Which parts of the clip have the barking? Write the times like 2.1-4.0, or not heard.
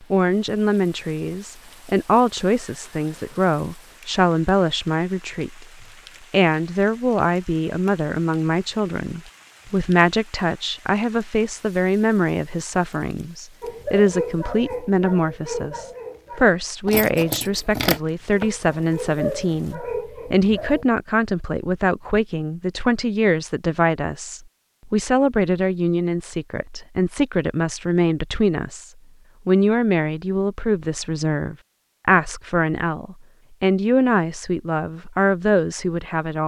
13.6-20.9.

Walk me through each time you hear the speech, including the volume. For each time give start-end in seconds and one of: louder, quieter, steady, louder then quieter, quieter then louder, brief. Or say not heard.
0.1-36.4 steady.